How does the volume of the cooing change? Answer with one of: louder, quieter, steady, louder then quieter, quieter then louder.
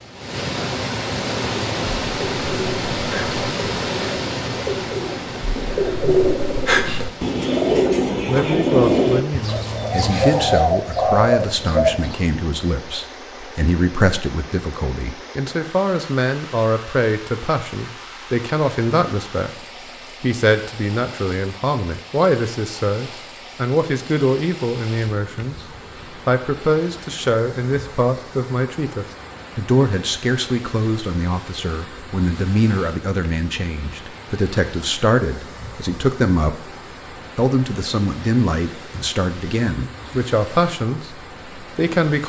louder.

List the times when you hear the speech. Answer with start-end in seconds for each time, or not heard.
8.2-25.6, 26.2-36.6, 37.4-42.2.